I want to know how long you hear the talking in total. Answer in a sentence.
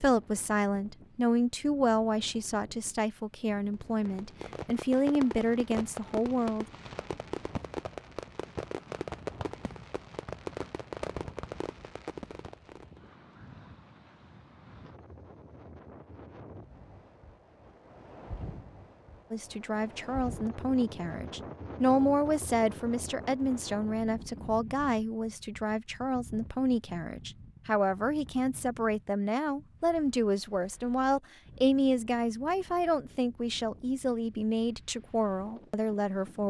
The talking can be heard for 24 seconds in total.